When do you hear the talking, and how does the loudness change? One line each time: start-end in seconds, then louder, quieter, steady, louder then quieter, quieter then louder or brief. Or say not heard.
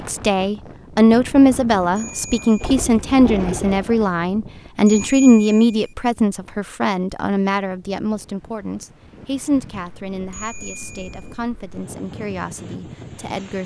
0.1-13.6 quieter.